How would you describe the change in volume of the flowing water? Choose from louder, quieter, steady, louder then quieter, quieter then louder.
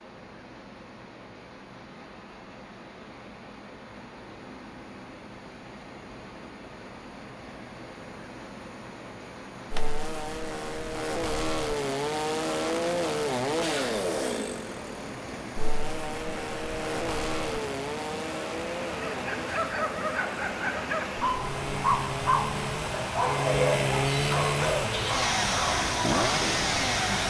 louder.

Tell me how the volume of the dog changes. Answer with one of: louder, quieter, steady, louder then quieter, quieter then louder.
steady.